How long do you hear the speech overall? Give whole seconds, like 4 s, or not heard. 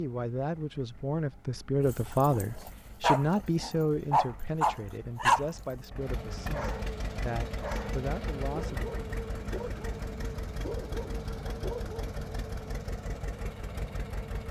9 s.